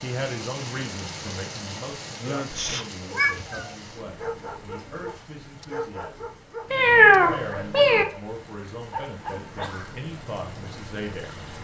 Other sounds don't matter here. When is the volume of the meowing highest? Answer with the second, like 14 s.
7 s.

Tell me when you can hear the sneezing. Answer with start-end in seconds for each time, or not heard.
2.2-2.9, 9.5-10.0.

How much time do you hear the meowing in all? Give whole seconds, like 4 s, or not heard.
2 s.